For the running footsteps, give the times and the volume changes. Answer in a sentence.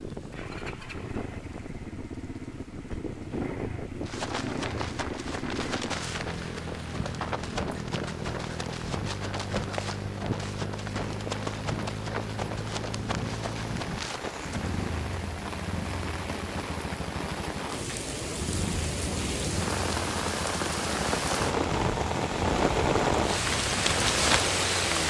You can hear the running footsteps from 4.0 to 14.8 s, at a steady volume.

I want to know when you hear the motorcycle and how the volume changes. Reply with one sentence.
The motorcycle can be heard from 0.0 to 25.0 s, at a steady volume.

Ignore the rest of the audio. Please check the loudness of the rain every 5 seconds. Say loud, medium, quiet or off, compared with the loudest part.
quiet, quiet, quiet, medium, loud.